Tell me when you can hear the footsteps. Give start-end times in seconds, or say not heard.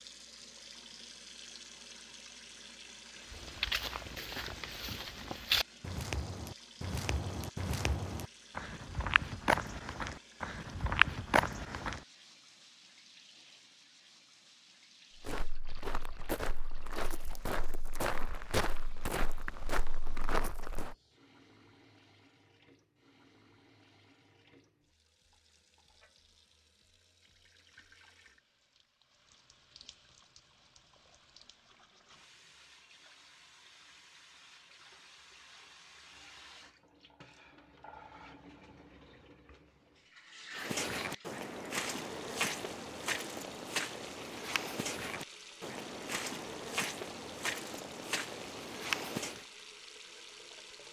3.2-12.0, 15.2-20.9, 40.5-49.5.